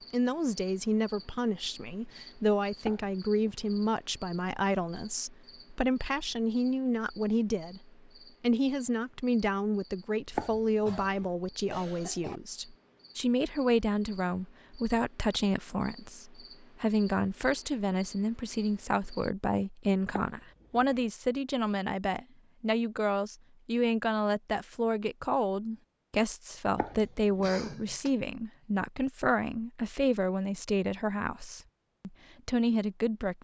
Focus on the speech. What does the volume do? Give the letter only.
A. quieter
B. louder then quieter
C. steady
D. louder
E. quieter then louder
C.